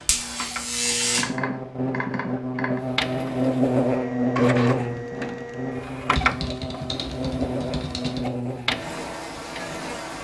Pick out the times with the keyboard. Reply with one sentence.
You can hear the keyboard from 1.1 to 2.8 s and from 6.2 to 8.3 s.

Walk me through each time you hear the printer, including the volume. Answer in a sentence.
You can hear the printer from 0.2 to 10.1 s, getting louder.